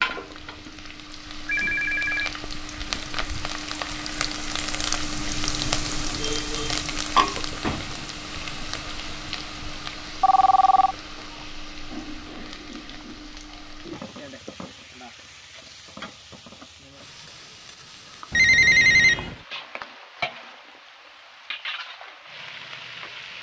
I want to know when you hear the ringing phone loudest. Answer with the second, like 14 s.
19 s.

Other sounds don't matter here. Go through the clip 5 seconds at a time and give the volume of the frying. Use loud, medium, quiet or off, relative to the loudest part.
loud, loud, medium, quiet, medium.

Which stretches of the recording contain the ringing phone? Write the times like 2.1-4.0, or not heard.
1.4-3.5, 10.2-10.9, 18.3-19.4.